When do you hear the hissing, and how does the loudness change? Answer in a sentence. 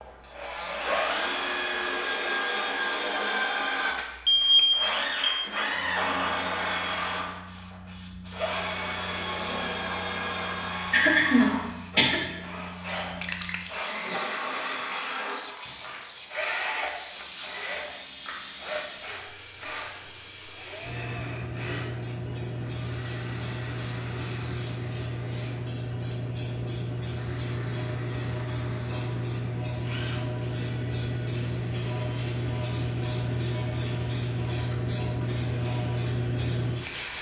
You can hear the hissing from 0.0 to 37.1 s, getting louder.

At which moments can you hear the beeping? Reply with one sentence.
The beeping can be heard from 4.0 to 5.4 s.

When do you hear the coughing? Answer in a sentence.
The coughing can be heard from 10.9 to 12.2 s.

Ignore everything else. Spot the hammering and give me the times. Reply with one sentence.
The hammering can't be heard in this clip.